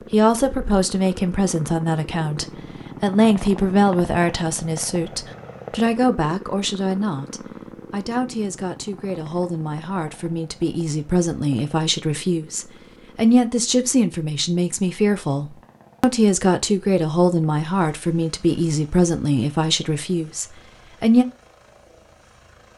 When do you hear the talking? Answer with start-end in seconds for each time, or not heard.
0.1-21.2.